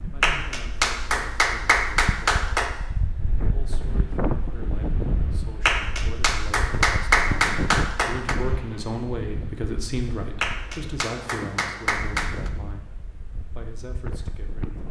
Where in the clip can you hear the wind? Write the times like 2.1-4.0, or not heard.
0.0-14.8.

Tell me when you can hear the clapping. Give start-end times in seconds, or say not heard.
0.2-2.7, 5.7-8.3, 10.4-12.5.